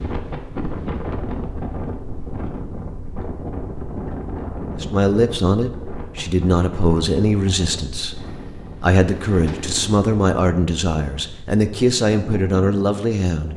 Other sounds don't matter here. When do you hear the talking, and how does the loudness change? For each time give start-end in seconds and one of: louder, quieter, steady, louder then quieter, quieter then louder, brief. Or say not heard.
4.8-13.5 steady.